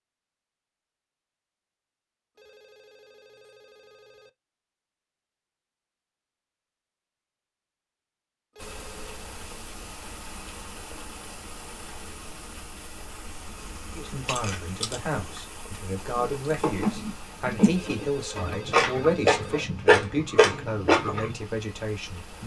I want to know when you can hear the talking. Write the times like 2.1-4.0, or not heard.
13.9-22.4.